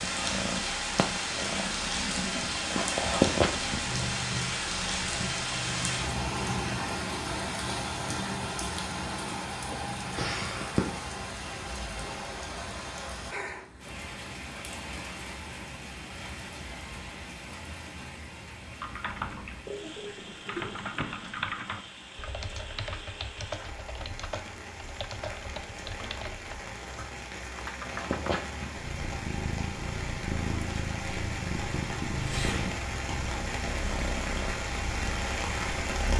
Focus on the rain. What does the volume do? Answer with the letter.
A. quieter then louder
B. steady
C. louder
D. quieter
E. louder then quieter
A.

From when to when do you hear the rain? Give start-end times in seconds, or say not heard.
0.0-36.1.